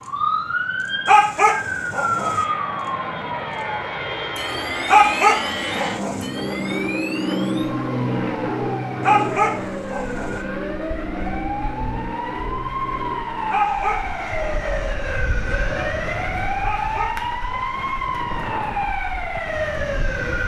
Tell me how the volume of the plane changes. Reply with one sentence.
The loudness of the plane goes up, then down.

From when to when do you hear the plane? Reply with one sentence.
You can hear the plane from 0.0 to 20.4 s.